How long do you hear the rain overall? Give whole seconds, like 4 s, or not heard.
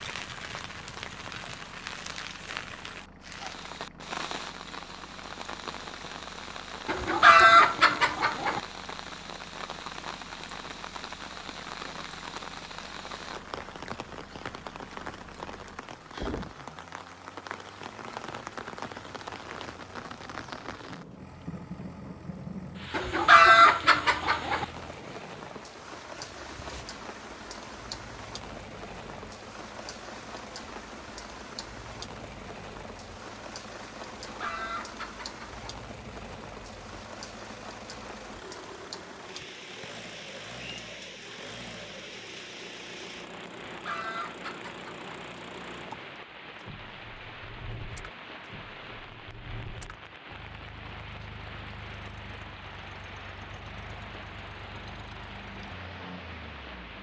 57 s.